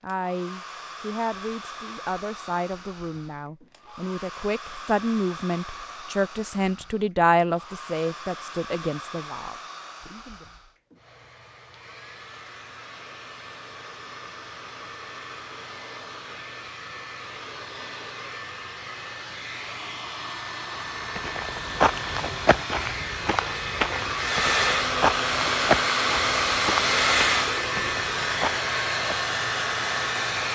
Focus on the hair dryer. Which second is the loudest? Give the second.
27 s.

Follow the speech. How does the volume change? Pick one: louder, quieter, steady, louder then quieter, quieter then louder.
louder then quieter.